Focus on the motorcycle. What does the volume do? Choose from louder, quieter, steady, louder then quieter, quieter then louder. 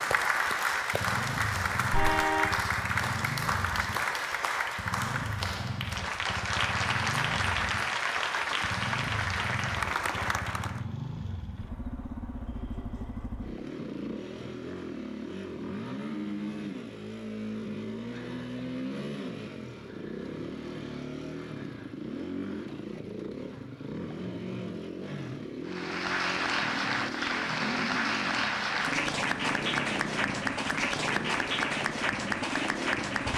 steady.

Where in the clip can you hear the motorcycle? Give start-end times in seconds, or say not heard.
0.0-33.3.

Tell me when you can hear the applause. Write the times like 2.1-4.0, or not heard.
0.0-10.8, 25.6-33.3.